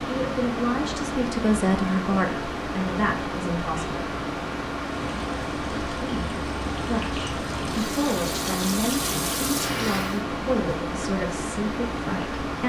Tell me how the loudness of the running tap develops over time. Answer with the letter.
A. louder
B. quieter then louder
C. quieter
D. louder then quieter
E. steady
A.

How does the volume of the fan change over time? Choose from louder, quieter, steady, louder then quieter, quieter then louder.
steady.